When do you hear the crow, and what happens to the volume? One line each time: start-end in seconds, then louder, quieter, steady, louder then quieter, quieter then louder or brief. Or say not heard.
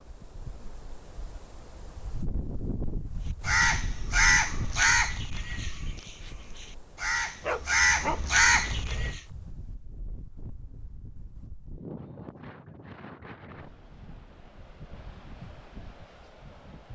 3.5-9.2 quieter then louder.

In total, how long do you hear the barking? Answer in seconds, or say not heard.
2 s.